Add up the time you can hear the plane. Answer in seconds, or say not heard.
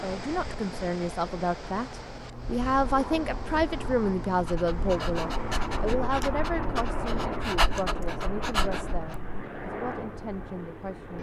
11 s.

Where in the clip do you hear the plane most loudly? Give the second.
7 s.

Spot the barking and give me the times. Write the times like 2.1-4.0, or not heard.
4.4-9.4.